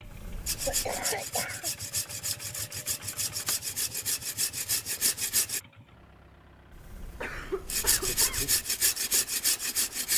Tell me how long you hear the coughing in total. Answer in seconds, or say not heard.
2 s.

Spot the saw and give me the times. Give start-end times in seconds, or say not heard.
0.5-5.6, 7.7-10.1.